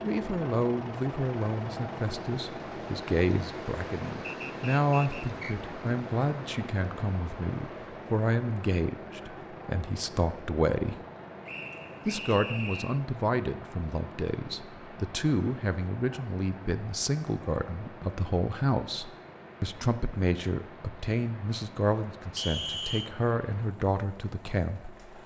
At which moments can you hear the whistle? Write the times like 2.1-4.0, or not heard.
4.2-5.5, 11.4-13.0, 22.4-23.1.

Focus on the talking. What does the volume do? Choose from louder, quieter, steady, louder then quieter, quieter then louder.
steady.